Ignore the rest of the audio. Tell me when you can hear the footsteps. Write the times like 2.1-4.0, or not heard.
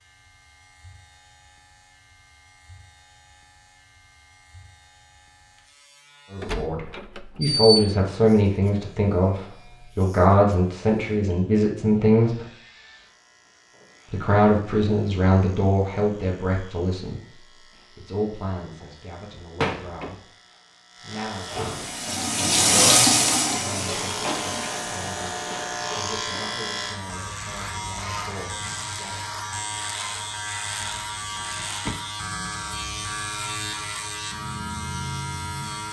not heard.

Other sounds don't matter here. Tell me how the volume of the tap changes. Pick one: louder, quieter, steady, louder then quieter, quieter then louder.
louder then quieter.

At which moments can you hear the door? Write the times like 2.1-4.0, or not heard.
6.4-7.9, 19.6-20.1, 30.8-31.9.